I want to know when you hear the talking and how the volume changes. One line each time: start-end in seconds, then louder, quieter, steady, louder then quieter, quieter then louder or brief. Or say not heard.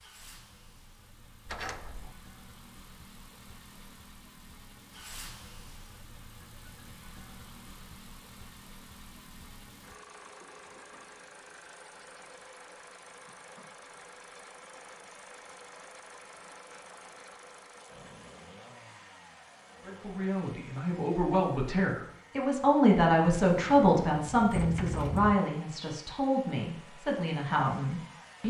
19.8-28.4 louder then quieter.